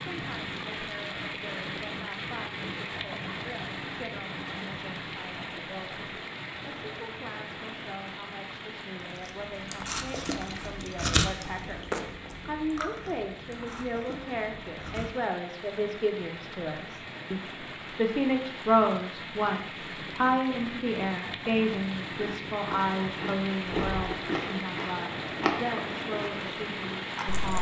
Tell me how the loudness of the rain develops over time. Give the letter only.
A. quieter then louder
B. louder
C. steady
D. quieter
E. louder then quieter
A.